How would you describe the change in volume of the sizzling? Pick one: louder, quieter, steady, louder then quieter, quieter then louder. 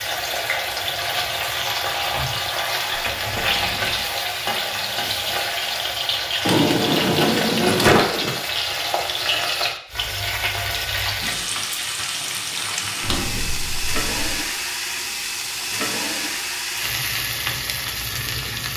steady.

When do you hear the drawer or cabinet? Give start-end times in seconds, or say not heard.
2.9-4.1, 6.5-8.3, 13.0-14.4.